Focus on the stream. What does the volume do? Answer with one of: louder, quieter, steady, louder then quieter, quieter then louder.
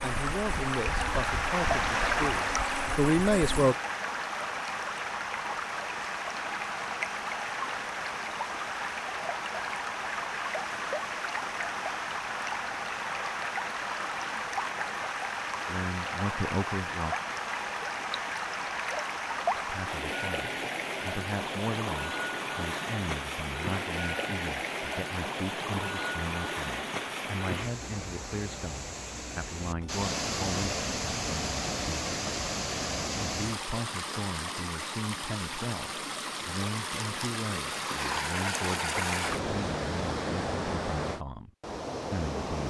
steady.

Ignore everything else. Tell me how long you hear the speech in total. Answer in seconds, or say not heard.
27 s.